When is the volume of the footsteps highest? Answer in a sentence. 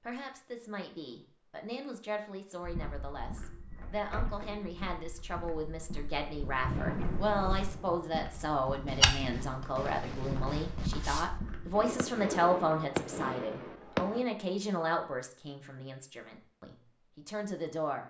The volume of the footsteps peaks at 9 seconds.